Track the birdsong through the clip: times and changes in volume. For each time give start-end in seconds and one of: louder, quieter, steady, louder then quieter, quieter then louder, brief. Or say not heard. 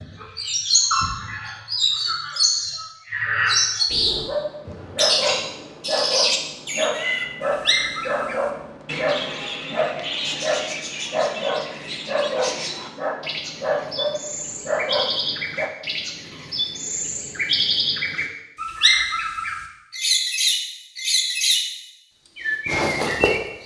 0.0-21.7 quieter then louder
22.4-23.6 brief.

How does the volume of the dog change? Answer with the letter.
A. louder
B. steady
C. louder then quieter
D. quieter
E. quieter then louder
B.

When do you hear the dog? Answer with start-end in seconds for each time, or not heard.
4.1-15.7.